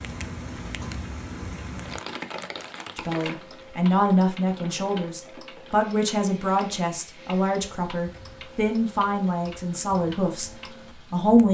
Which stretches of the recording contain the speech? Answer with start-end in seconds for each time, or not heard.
3.0-11.4.